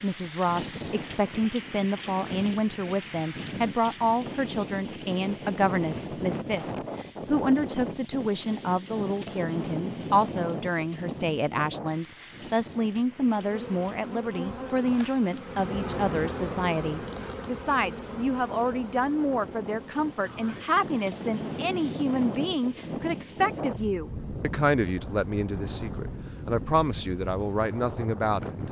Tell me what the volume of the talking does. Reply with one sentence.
The loudness of the talking stays about the same.